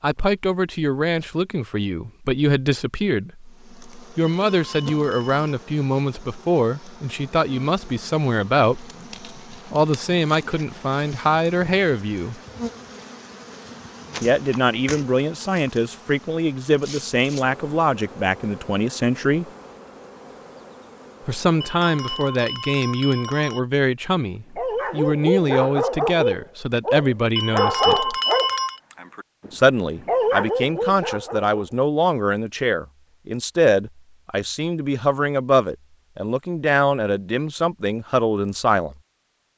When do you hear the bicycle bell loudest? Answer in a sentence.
The volume of the bicycle bell peaks at 28 seconds.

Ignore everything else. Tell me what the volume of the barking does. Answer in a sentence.
The loudness of the barking goes down, then up.